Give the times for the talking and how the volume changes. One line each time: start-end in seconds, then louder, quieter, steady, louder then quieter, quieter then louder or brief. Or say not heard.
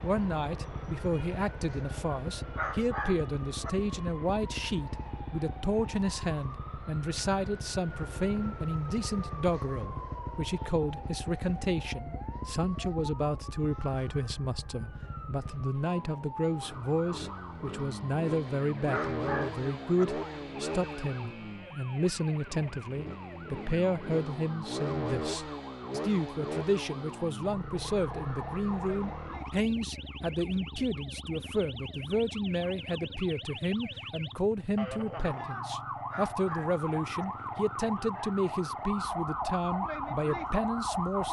0.0-41.2 steady.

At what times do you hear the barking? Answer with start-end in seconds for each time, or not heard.
2.5-3.7, 18.9-20.1, 36.1-37.2.